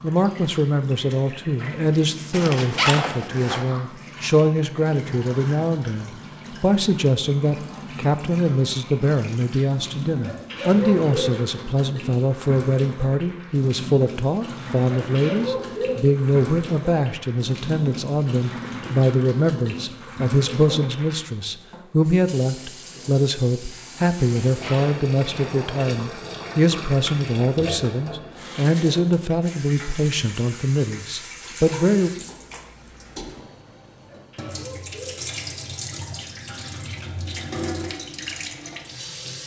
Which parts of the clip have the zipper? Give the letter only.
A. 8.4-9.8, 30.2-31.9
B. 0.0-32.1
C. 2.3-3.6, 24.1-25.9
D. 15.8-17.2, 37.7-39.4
C.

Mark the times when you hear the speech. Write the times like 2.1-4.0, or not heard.
0.0-32.1.